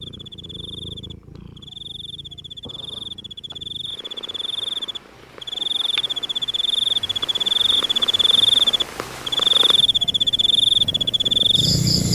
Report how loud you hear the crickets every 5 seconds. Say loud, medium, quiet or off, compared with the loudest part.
quiet, loud, loud.